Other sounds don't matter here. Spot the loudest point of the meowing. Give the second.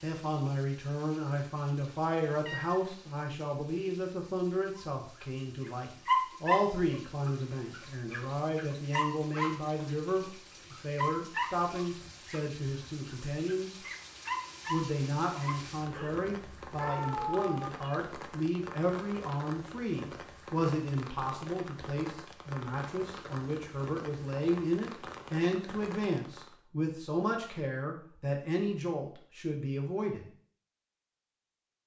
17 s.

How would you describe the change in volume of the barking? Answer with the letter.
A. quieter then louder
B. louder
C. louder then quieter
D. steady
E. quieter
E.